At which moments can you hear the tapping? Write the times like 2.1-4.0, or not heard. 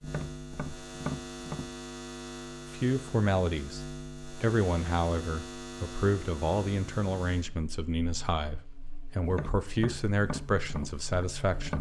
0.0-1.7, 9.2-11.7.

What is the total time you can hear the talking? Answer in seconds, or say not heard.
9 s.